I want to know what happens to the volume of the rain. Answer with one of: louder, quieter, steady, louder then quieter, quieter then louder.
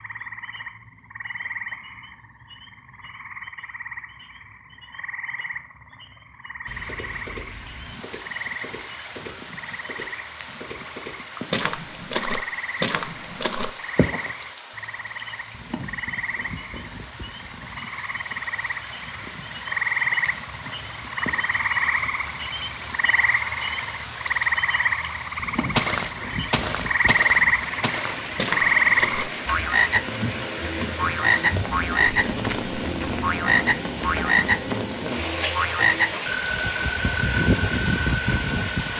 louder.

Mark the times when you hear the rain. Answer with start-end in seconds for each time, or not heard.
6.7-38.9.